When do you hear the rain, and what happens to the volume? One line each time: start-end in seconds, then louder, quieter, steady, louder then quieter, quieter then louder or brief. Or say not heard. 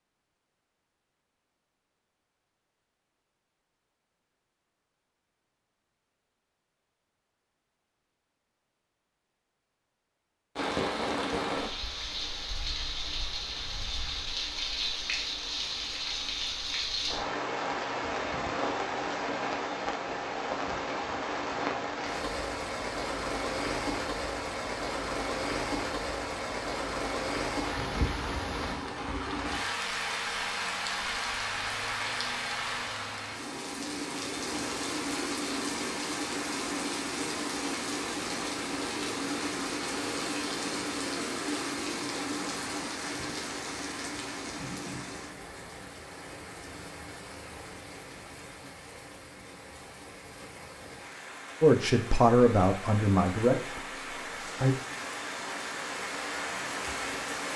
10.6-57.5 quieter.